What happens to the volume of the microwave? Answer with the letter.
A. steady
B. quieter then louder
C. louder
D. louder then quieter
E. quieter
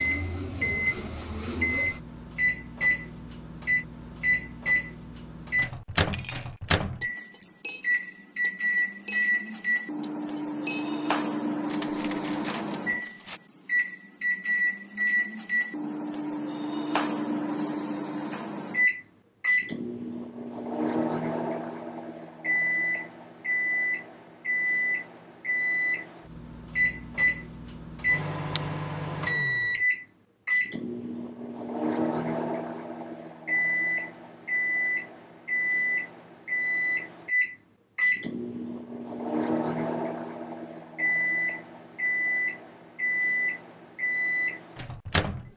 A.